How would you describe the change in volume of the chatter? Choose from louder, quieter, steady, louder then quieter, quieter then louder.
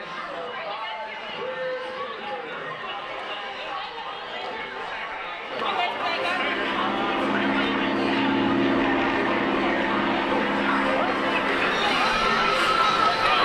louder.